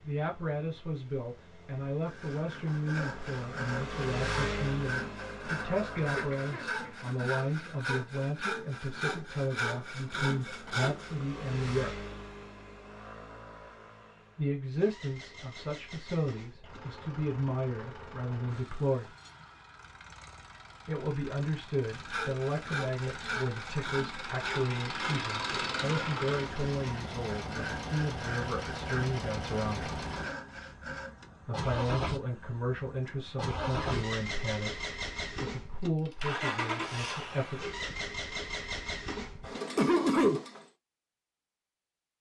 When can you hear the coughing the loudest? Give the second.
40 s.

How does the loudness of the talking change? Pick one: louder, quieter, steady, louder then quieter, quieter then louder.
steady.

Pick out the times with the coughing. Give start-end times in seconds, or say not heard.
6.0-7.7, 39.8-40.5.